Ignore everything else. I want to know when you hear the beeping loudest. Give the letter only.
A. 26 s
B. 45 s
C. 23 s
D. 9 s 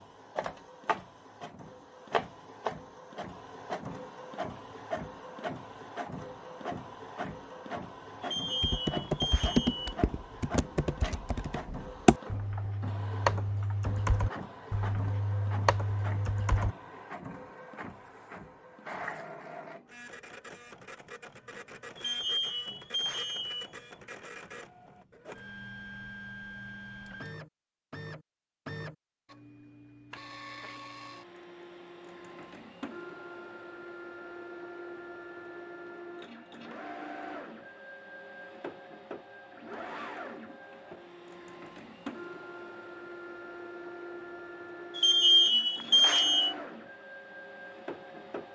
B.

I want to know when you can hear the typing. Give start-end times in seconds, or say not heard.
8.6-16.8.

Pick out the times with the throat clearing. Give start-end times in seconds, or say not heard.
not heard.